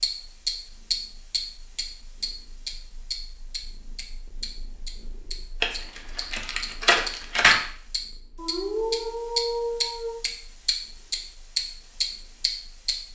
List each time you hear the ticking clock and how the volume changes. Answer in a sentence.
The ticking clock can be heard from 0.0 to 12.9 s, getting quieter then louder.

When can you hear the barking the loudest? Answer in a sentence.
The loudest moment of the barking is at 9 seconds.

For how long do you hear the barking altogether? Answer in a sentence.
The barking can be heard for 2 seconds in total.